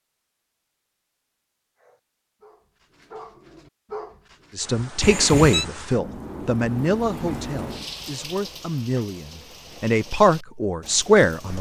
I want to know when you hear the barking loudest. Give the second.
4 s.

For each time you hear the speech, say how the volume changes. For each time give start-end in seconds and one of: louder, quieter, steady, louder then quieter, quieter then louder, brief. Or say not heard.
4.5-11.5 quieter then louder.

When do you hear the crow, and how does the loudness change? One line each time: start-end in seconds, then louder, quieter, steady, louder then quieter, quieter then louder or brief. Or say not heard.
not heard.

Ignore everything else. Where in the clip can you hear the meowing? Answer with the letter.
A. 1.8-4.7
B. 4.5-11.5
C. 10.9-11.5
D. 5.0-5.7
D.